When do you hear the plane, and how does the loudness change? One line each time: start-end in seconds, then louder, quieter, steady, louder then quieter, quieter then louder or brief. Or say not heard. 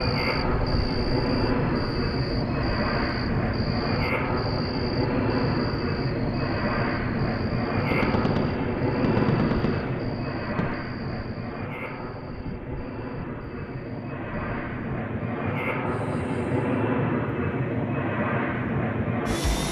0.0-19.6 quieter then louder.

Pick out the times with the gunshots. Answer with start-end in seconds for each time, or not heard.
7.9-10.8.